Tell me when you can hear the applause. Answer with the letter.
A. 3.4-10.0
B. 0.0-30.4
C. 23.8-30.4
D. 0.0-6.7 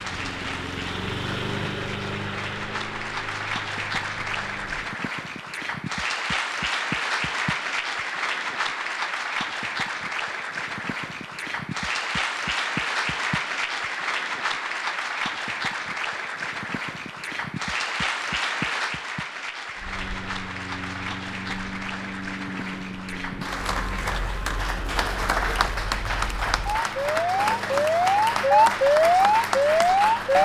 B.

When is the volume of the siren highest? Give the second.
29 s.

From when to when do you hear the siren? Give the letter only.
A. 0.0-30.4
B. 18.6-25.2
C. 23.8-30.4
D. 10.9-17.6
C.